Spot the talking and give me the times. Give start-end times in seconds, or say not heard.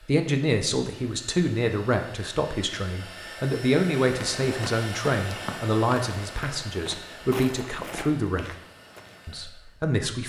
0.1-8.5, 9.2-10.2.